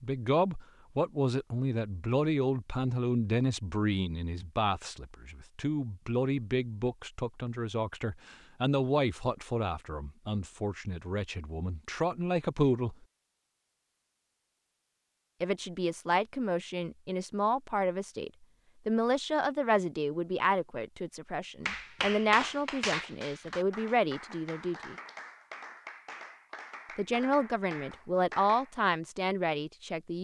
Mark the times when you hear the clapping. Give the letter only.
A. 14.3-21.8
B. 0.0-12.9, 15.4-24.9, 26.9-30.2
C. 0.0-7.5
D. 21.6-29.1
D.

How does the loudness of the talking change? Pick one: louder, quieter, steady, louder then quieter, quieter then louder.
steady.